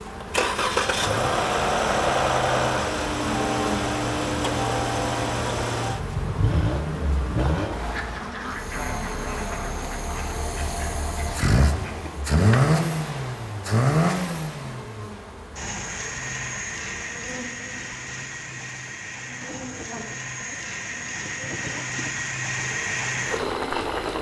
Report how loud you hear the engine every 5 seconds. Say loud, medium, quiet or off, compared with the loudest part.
loud, medium, loud, medium, medium.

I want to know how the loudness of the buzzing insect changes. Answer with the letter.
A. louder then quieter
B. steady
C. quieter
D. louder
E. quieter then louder
C.